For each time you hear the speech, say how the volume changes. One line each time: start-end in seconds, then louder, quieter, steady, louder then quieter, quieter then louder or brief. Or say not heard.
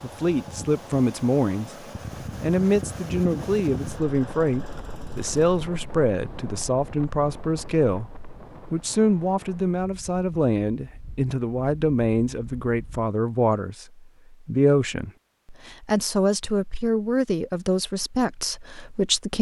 0.0-1.8 brief
2.4-19.3 steady.